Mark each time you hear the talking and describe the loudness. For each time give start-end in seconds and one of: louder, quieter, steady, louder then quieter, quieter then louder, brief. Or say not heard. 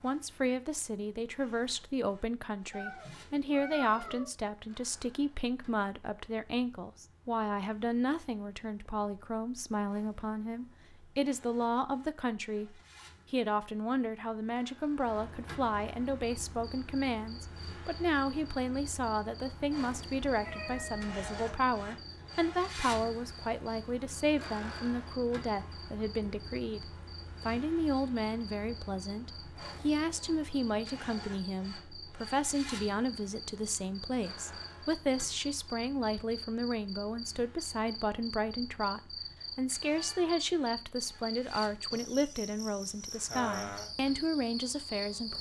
0.0-26.9 steady
27.4-45.3 steady.